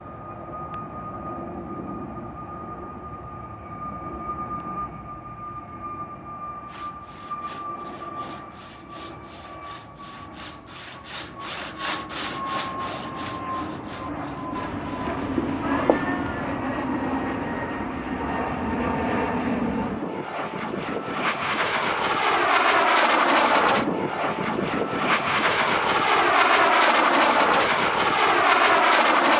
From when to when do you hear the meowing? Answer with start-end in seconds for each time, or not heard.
14.6-16.6.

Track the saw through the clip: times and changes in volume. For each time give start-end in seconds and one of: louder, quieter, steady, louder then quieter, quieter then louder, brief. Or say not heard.
6.7-15.2 louder then quieter.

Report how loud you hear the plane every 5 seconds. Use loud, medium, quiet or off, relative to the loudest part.
quiet, quiet, quiet, medium, loud, loud.